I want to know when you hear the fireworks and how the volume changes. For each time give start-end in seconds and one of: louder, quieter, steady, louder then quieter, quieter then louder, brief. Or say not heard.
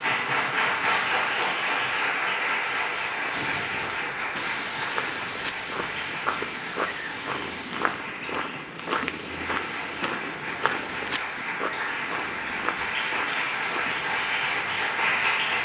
3.3-11.5 quieter.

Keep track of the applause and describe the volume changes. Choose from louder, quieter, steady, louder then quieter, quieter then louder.
quieter then louder.